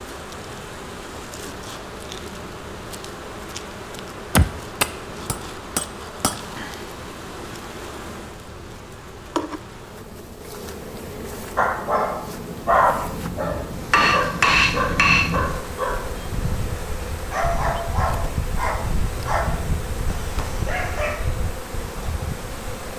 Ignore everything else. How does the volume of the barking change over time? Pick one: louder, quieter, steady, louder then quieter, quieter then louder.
quieter.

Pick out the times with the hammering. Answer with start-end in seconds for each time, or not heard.
4.3-6.4, 13.9-15.4.